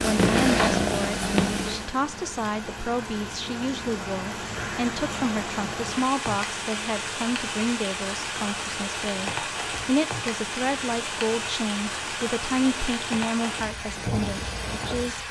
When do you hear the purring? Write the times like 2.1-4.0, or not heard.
0.0-1.9.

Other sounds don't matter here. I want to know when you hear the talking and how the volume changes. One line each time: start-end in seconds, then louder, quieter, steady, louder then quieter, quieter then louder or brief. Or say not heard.
0.0-15.2 steady.